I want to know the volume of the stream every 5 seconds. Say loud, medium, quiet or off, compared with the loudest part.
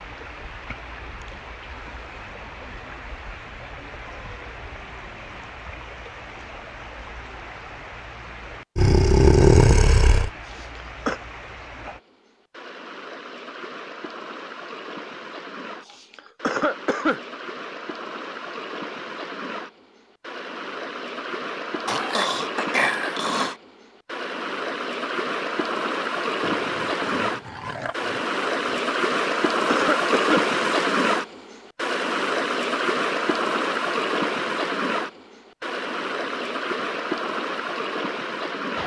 quiet, quiet, quiet, quiet, medium, loud, loud, medium.